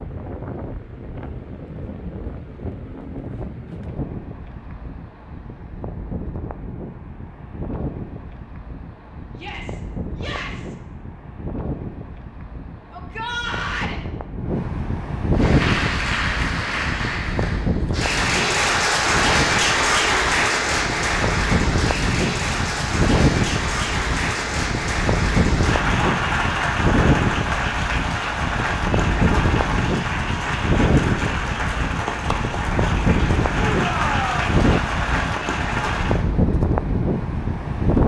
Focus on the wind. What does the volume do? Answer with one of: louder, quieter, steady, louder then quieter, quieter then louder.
louder.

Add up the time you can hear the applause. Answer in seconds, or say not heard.
21 s.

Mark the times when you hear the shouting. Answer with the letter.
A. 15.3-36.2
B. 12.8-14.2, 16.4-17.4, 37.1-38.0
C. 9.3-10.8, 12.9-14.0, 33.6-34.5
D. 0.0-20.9
C.